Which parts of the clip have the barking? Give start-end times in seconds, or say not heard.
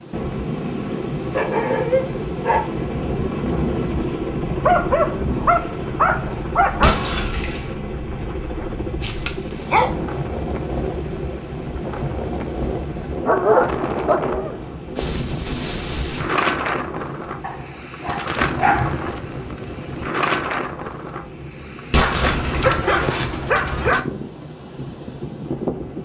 1.1-2.6, 4.7-7.0, 9.0-9.9, 13.2-14.8, 17.4-19.1, 22.0-24.0.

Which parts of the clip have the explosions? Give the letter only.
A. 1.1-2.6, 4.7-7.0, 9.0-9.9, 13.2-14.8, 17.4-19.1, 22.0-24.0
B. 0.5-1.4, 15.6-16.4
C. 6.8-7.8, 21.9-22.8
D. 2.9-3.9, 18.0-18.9
C.